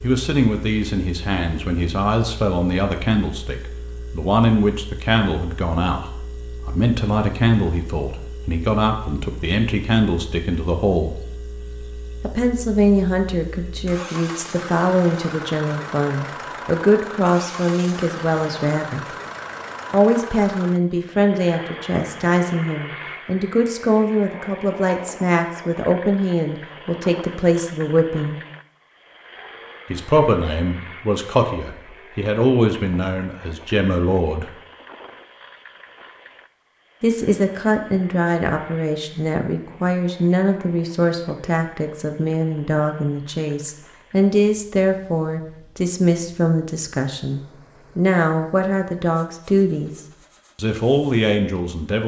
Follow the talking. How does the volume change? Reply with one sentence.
The volume of the talking stays about the same.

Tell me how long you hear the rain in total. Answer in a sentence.
The rain can't be heard in this clip.